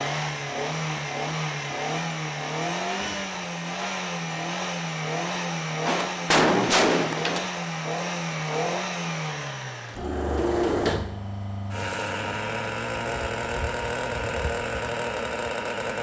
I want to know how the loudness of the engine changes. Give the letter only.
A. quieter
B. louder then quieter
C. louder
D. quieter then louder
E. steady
E.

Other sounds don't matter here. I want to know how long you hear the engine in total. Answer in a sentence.
The engine can be heard for 16 seconds in total.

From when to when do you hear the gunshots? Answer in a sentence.
The gunshots can be heard from 5.8 to 7.5 s.